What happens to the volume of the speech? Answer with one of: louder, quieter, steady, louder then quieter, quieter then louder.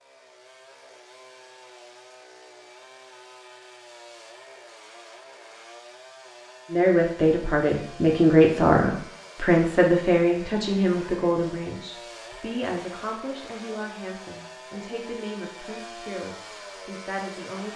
quieter.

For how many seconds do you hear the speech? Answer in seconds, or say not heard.
11 s.